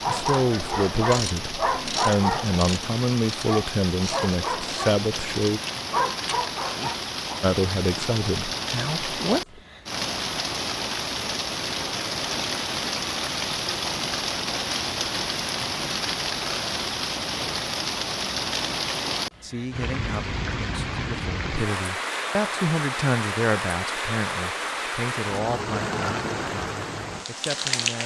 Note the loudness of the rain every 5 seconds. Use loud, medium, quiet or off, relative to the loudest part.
medium, loud, loud, loud, loud, loud.